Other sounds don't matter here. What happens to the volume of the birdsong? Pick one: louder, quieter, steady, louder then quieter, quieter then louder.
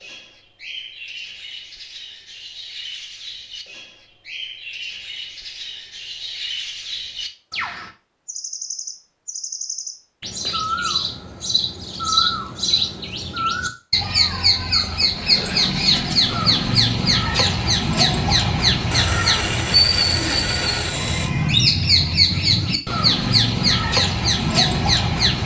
louder.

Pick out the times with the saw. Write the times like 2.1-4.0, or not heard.
18.9-21.3.